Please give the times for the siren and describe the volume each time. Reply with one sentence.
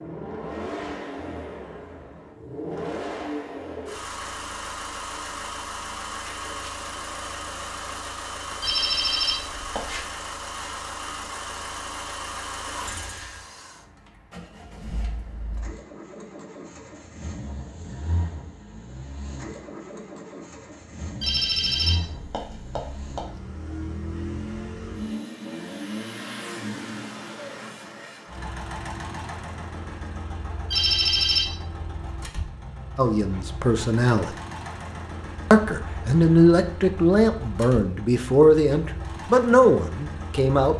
The siren can't be heard in this clip.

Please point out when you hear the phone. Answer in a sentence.
You can hear the phone from 8.6 to 10.1 s, from 21.2 to 23.2 s and from 30.7 to 31.6 s.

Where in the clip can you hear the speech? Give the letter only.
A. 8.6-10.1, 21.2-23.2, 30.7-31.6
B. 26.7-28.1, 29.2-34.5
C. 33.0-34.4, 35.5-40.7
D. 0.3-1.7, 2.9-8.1
C.